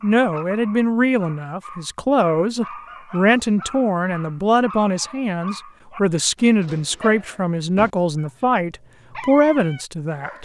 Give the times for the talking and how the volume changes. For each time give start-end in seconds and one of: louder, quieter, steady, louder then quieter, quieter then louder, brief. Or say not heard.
0.0-10.3 steady.